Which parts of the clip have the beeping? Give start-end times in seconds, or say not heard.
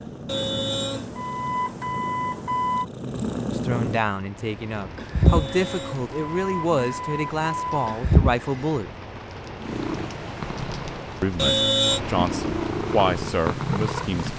0.2-2.9, 5.2-8.0, 11.3-12.0.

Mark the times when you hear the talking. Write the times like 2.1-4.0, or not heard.
3.5-8.9, 11.2-14.3.